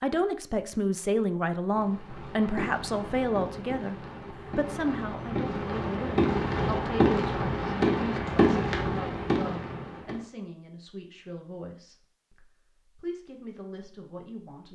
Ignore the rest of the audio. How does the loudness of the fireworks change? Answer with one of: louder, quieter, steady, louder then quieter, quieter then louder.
louder.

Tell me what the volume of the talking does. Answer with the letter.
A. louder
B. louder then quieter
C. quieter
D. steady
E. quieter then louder
C.